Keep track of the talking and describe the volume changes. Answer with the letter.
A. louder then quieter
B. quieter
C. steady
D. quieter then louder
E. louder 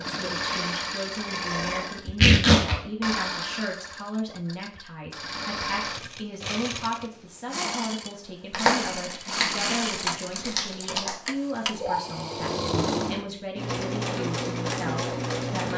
C.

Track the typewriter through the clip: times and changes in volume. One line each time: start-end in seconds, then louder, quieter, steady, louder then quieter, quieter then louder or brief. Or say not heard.
not heard.